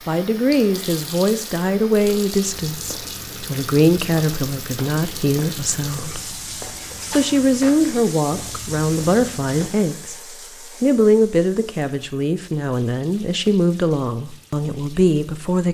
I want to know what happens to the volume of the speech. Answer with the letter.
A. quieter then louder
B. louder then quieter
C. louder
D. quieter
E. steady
E.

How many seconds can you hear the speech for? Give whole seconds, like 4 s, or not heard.
15 s.